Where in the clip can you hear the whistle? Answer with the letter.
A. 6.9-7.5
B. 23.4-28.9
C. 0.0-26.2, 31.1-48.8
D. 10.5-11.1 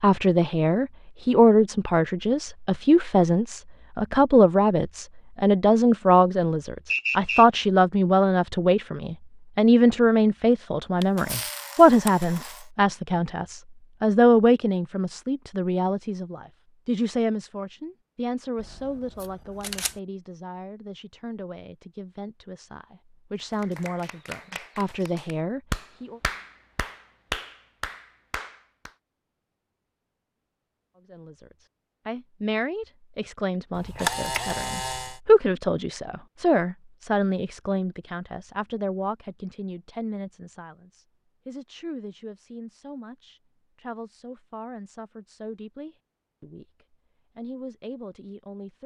A.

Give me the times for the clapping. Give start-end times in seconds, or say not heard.
23.4-28.9.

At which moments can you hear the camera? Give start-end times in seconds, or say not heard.
11.0-12.7, 18.6-20.0, 33.7-35.2.